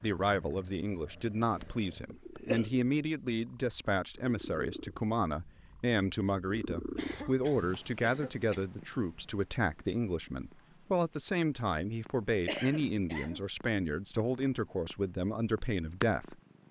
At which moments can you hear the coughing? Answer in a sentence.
You can hear the coughing from 1.4 to 2.7 s, from 7.0 to 8.7 s and from 12.4 to 13.4 s.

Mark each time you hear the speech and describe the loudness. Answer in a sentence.
The speech can be heard from 0.0 to 16.4 s, at a steady volume.